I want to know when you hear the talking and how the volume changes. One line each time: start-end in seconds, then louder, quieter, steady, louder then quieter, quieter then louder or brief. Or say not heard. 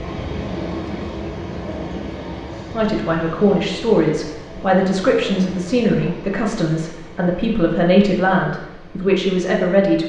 2.7-10.0 steady.